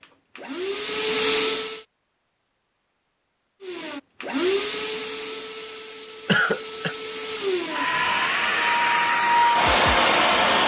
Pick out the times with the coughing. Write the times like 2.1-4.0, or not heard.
6.2-7.0.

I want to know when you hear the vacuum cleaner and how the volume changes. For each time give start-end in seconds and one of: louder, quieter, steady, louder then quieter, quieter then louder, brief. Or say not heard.
0.0-1.9 brief
3.6-10.6 quieter then louder.